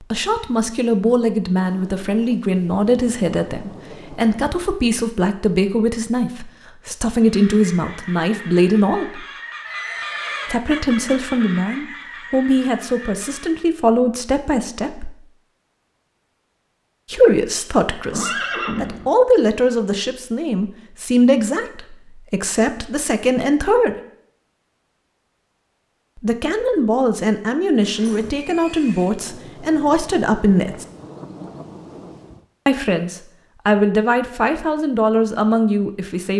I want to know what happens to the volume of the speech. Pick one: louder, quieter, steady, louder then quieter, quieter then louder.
steady.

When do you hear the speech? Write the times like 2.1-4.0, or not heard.
0.0-9.2, 10.5-15.2, 17.1-23.9, 26.1-30.9, 32.6-36.3.